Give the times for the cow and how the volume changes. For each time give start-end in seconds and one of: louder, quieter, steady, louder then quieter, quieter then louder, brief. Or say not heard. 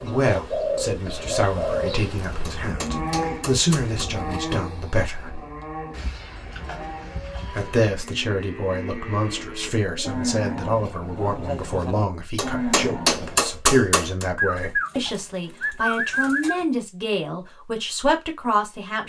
2.1-13.4 quieter then louder.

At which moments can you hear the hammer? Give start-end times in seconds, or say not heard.
2.5-4.0, 12.3-14.2.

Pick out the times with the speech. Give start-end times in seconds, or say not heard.
0.0-5.4, 7.5-19.0.